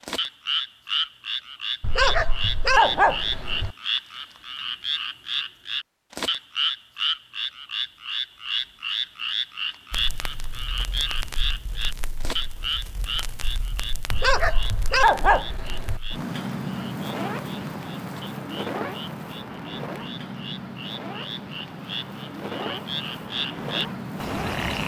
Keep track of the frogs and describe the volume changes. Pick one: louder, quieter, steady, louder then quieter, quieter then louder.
quieter then louder.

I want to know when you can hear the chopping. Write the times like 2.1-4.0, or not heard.
not heard.